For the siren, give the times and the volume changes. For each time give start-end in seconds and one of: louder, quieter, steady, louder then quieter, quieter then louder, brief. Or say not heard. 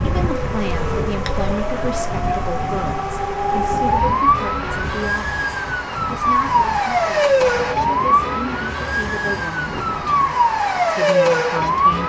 0.0-12.0 louder.